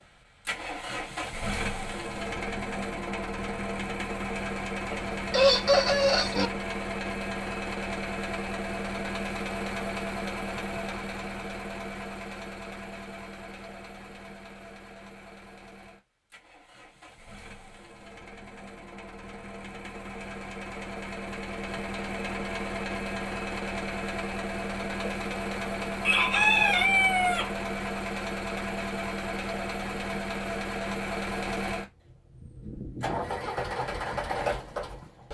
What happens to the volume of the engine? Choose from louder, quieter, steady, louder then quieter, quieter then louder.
quieter then louder.